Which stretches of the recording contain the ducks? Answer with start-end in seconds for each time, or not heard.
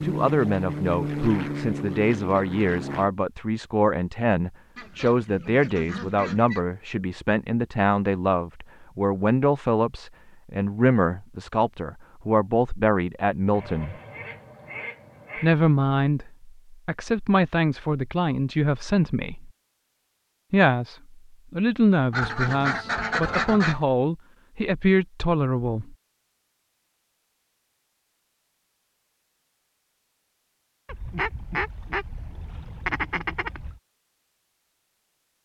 4.8-6.7, 13.5-15.6, 22.1-23.8, 30.9-33.8.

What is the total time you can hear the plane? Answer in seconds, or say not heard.
3 s.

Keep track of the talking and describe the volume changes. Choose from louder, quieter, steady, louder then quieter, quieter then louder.
steady.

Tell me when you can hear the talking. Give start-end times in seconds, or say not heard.
0.0-13.9, 15.4-19.5, 20.5-25.9.